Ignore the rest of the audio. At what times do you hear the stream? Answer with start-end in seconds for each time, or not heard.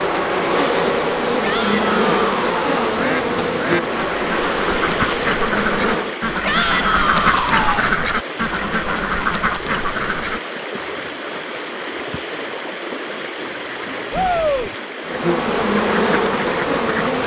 0.0-17.2.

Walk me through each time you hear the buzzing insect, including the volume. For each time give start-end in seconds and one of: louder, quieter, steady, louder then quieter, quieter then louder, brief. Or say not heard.
0.0-6.2 quieter
15.0-17.2 brief.